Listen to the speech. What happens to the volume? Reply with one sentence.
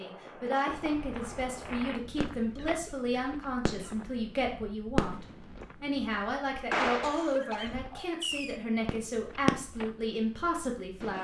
The volume of the speech stays about the same.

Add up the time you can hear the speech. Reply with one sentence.
The speech can be heard for 11 seconds in total.